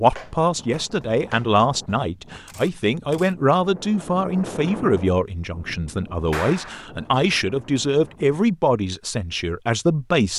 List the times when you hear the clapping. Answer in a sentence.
The clapping can be heard from 0.1 to 1.9 s and from 6.3 to 6.9 s.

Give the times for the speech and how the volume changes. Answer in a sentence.
You can hear the speech from 0.0 to 10.3 s, at a steady volume.